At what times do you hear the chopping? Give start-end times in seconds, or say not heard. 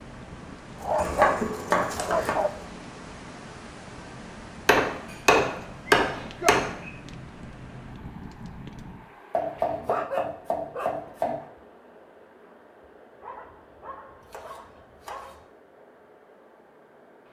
0.9-2.4, 4.7-6.9, 9.3-11.3, 14.3-15.3.